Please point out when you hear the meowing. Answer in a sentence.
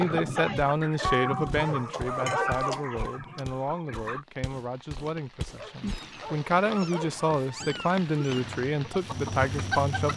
You can hear the meowing from 1.0 to 3.5 s and from 5.8 to 8.4 s.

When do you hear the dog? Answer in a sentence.
You can hear the dog from 0.9 to 2.9 s and from 5.5 to 7.4 s.